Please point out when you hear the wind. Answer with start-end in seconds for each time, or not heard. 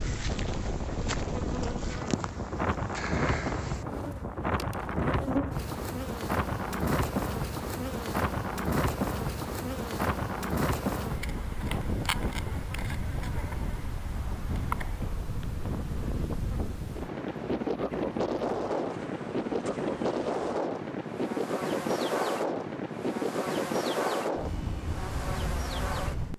0.0-26.3.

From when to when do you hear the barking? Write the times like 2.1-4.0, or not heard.
not heard.